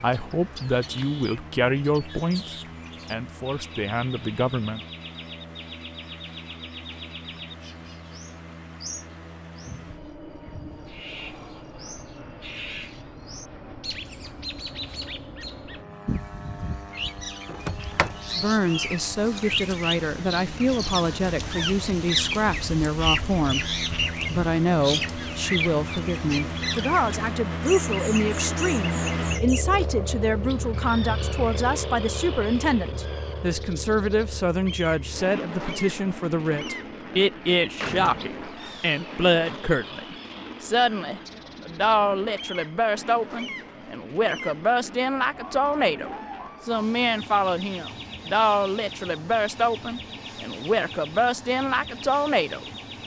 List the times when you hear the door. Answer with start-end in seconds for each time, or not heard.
17.4-18.1, 37.3-39.0.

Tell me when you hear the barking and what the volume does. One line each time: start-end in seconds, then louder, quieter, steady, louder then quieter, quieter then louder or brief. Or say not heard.
not heard.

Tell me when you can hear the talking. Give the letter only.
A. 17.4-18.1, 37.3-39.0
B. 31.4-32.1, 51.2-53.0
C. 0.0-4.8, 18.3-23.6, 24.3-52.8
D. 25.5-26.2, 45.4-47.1
C.